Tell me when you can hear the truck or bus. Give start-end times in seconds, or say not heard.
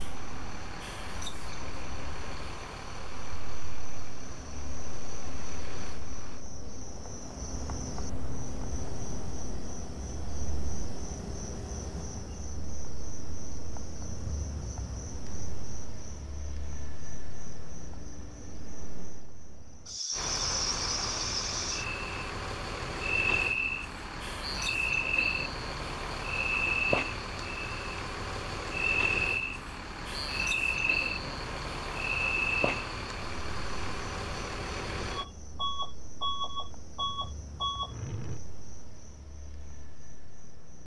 0.0-6.5, 20.1-38.4.